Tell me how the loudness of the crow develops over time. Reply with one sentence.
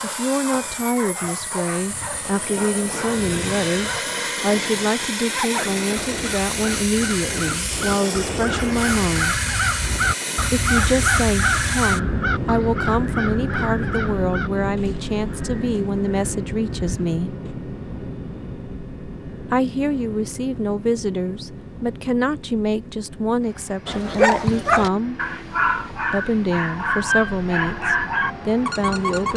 The loudness of the crow goes up, then down.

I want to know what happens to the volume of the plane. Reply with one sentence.
The volume of the plane goes down.